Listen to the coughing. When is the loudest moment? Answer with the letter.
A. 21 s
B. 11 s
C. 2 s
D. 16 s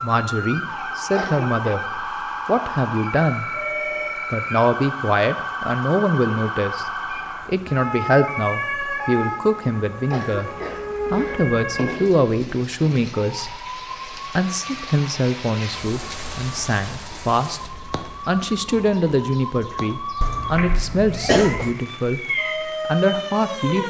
A.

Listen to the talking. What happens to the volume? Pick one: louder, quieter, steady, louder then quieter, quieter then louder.
steady.